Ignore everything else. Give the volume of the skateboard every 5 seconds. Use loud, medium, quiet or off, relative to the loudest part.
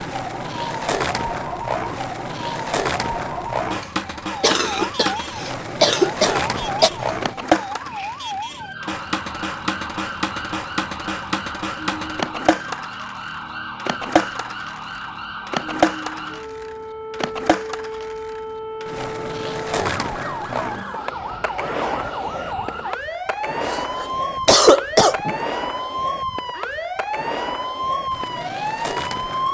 loud, loud, loud, loud, medium, medium.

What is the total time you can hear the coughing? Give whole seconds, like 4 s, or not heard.
4 s.